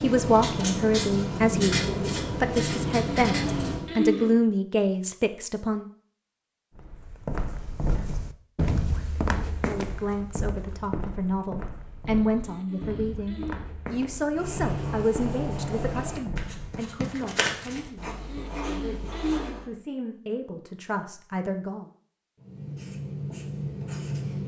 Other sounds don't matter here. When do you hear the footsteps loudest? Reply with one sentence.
The loudest moment of the footsteps is at 9 seconds.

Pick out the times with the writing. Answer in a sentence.
The writing can be heard from 0.0 to 3.9 s, from 14.3 to 19.6 s and from 22.4 to 24.4 s.